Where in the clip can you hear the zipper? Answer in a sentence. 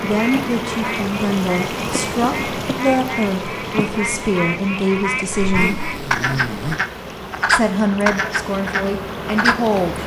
The zipper can be heard from 5.3 to 6.8 s.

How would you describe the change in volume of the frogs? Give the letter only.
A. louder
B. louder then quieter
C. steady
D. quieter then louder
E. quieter
A.